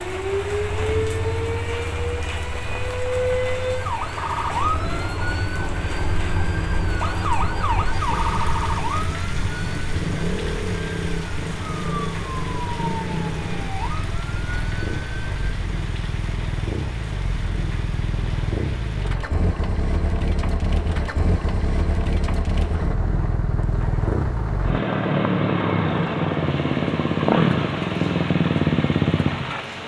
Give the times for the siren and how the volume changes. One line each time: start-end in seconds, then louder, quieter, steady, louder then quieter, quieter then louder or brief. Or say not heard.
0.0-15.6 quieter.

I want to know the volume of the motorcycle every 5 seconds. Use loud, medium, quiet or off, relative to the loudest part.
quiet, quiet, medium, medium, medium, loud.